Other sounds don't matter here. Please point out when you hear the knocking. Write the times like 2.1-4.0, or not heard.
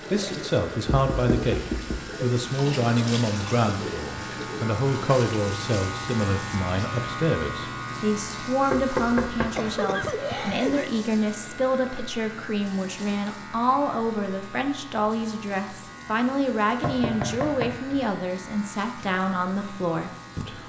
0.8-2.0, 8.7-9.5, 16.8-18.1.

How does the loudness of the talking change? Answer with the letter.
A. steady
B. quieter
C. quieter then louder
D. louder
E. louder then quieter
A.